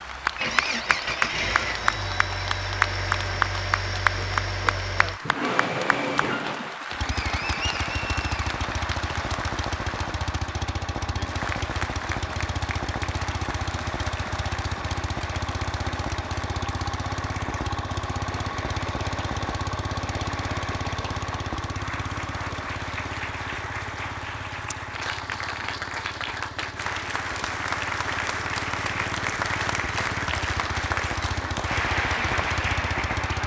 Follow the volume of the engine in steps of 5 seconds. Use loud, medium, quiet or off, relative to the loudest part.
loud, loud, loud, loud, loud, medium, loud.